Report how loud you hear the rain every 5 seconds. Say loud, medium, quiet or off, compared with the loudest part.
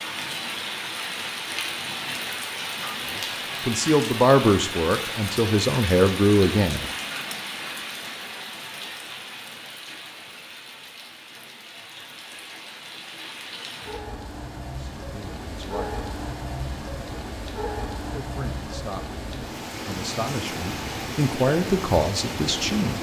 loud, loud, medium, loud, loud.